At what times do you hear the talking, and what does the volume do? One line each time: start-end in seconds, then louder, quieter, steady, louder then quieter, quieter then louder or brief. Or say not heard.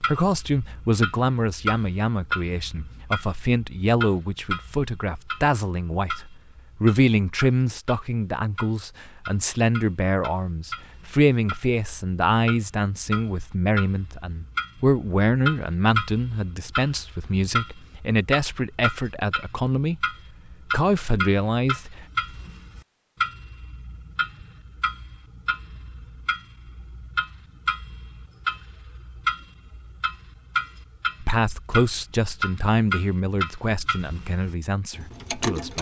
0.0-20.0 steady
20.7-22.1 brief
31.2-35.7 quieter.